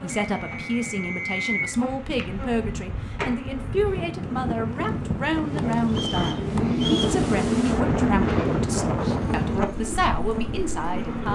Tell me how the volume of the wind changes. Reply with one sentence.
The loudness of the wind goes up, then down.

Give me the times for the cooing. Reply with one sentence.
The cooing can be heard from 5.3 to 11.3 s.